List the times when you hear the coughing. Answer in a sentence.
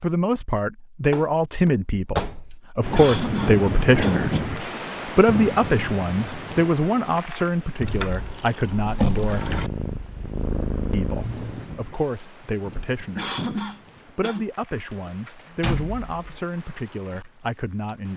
The coughing can be heard from 2.9 to 4.3 s and from 13.2 to 14.4 s.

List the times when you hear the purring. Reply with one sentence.
The purring can be heard from 7.8 to 11.8 s.